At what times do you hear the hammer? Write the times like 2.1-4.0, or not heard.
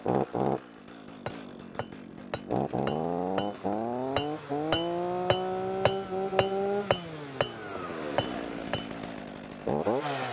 1.2-8.9.